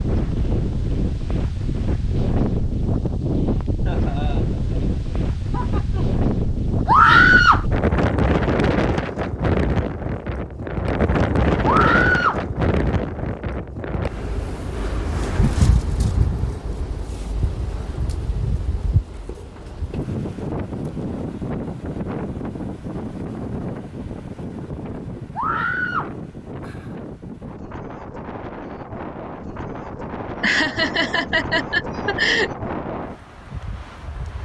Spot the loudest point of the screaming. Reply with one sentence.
The volume of the screaming peaks at 7 seconds.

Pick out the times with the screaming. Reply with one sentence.
The screaming can be heard from 6.8 to 7.7 s, from 11.7 to 12.4 s and from 25.4 to 26.1 s.